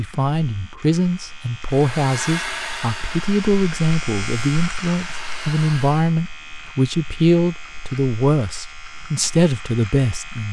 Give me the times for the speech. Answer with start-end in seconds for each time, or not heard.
0.0-10.4.